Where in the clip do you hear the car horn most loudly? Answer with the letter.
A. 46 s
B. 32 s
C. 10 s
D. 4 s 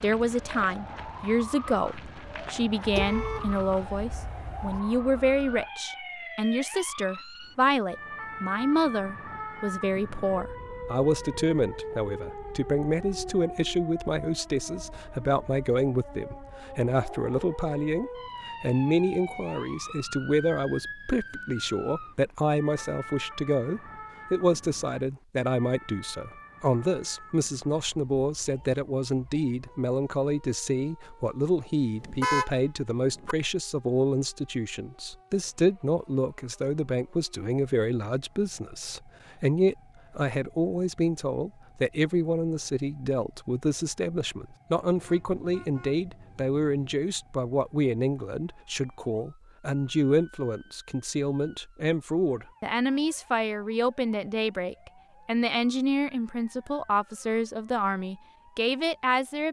B.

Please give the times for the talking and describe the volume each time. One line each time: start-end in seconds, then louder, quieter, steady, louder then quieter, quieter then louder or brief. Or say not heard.
0.0-59.4 steady.